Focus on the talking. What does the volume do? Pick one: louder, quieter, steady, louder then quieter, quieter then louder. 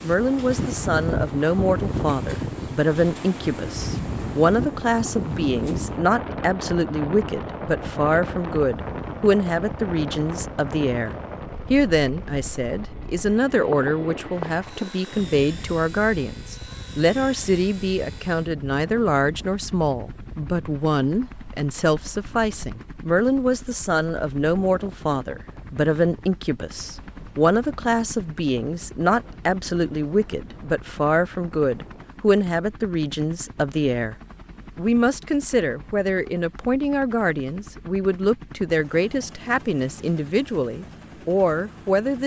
steady.